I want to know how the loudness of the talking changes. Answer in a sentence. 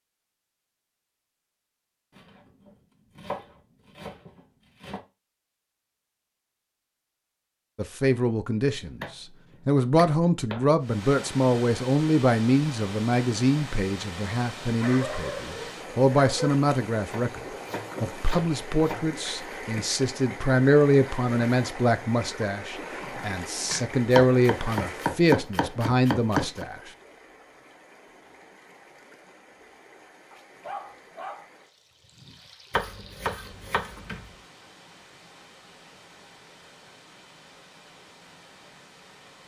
The volume of the talking stays about the same.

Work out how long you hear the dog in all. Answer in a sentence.
The dog can be heard for 3 seconds in total.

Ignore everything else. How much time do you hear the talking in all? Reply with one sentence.
The talking can be heard for 19 seconds in total.